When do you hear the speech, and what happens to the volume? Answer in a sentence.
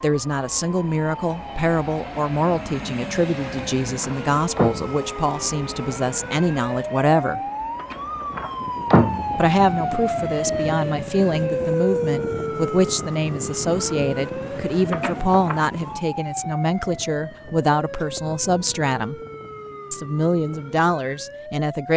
The speech can be heard from 0.0 to 7.4 s, at a steady volume; from 9.3 to 19.1 s, at a steady volume; and briefly from 19.9 to 21.9 s.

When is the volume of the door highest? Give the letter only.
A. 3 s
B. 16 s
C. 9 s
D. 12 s
C.